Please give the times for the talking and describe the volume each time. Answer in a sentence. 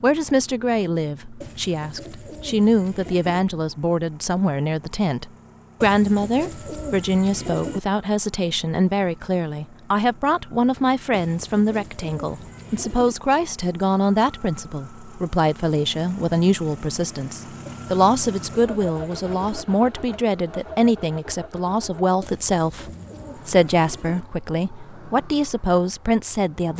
The talking can be heard from 0.0 to 26.7 s, at a steady volume.